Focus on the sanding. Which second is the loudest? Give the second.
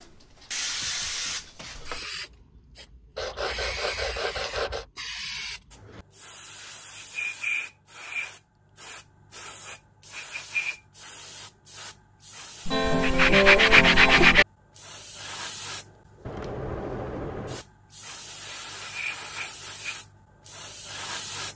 14 s.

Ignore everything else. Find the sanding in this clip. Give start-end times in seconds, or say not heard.
3.1-4.8, 12.7-14.4.